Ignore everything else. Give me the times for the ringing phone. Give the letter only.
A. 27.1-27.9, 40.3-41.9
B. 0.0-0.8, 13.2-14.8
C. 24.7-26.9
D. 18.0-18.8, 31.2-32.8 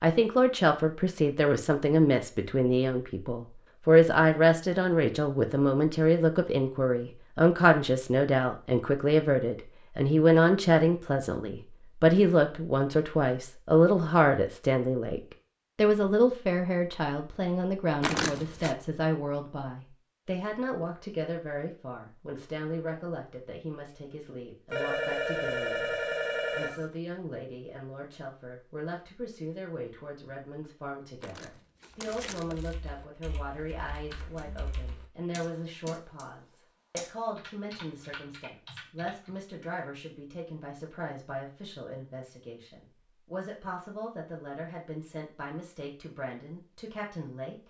C.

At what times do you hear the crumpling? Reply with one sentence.
You can hear the crumpling from 18.0 to 18.8 s and from 31.2 to 32.8 s.